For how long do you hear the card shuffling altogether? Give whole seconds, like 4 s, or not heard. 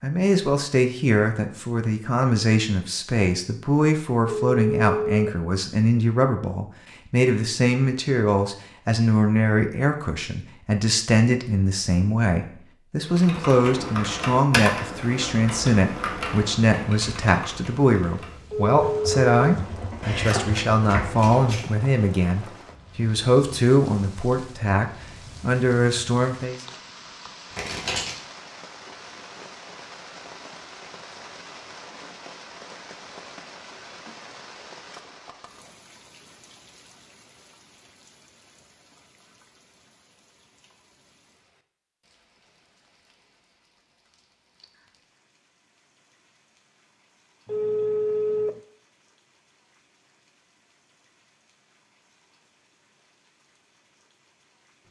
2 s.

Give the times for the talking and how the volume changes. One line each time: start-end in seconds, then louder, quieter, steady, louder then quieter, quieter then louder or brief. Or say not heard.
0.0-26.6 steady.